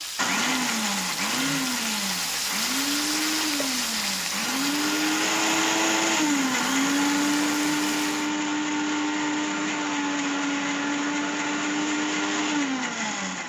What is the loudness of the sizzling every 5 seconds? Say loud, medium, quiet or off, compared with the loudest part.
loud, medium, off.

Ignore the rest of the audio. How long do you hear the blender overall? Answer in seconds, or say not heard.
13 s.